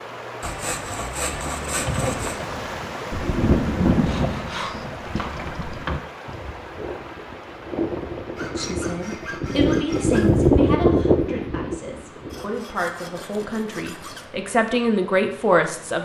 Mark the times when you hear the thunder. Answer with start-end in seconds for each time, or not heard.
3.1-5.8.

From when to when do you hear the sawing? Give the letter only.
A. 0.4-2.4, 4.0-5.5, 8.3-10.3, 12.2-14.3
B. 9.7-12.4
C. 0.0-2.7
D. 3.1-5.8
A.